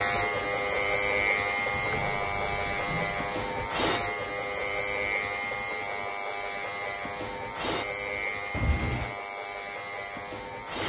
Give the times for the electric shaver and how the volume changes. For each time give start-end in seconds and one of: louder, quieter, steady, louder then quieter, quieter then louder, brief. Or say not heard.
0.0-10.8 quieter.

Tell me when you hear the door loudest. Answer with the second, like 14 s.
9 s.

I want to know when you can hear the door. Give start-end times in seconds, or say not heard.
1.7-3.7, 8.5-9.2.